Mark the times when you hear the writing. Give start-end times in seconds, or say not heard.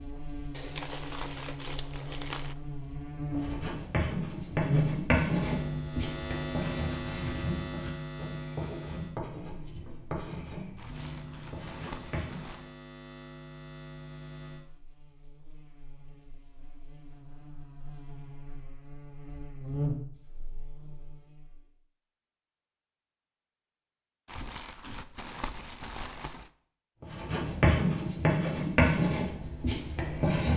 3.2-12.6, 27.0-30.5.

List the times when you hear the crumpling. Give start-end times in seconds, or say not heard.
0.5-2.5, 10.8-12.7, 24.2-26.5.